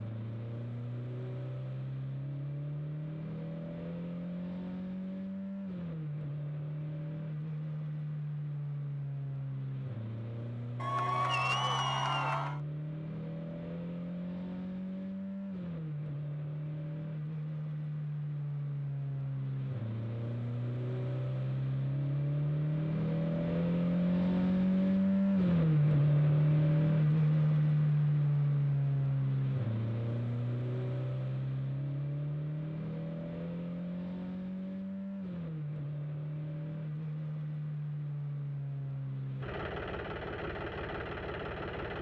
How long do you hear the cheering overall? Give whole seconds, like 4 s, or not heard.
2 s.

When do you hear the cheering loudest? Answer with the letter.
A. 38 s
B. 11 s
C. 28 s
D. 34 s
B.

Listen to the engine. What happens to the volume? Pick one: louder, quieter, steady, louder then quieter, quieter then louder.
louder then quieter.